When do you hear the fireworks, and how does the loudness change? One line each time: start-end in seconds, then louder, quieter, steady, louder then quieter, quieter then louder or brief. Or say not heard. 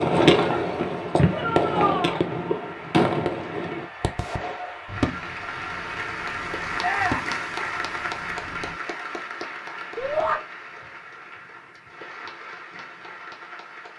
0.0-8.8 quieter then louder.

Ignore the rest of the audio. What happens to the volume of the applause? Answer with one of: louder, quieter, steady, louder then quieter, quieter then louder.
louder then quieter.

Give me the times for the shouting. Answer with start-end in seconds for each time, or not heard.
1.3-2.2, 6.8-7.3, 9.9-10.3.